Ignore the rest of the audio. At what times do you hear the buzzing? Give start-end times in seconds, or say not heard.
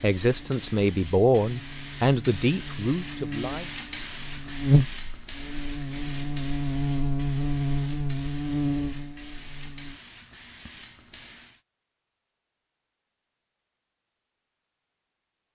0.2-10.0.